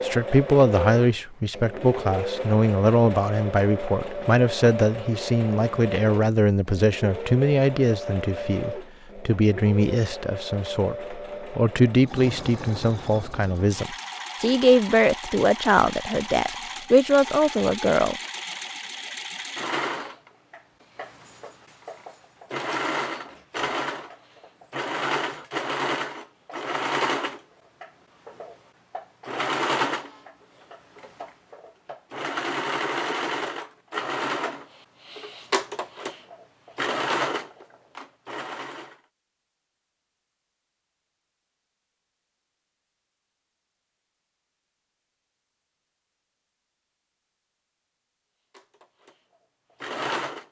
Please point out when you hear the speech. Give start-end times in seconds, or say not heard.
0.0-18.1.